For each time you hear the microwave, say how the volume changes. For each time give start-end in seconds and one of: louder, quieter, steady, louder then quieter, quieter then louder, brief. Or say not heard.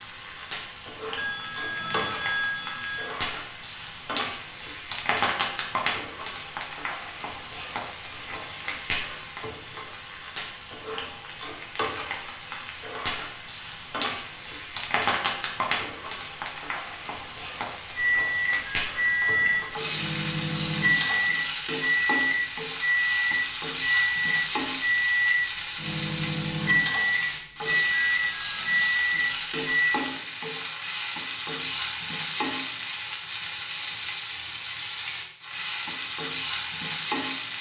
17.9-30.0 steady.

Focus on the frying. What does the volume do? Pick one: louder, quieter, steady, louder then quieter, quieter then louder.
steady.